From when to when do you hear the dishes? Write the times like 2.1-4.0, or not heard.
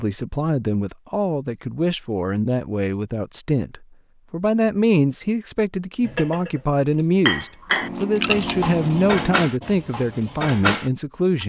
6.0-6.6, 7.2-11.4.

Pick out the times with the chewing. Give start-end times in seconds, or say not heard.
7.8-9.5.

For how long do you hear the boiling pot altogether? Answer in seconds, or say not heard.
not heard.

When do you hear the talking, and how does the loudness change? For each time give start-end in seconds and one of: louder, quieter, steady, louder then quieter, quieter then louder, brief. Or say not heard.
0.0-11.4 steady.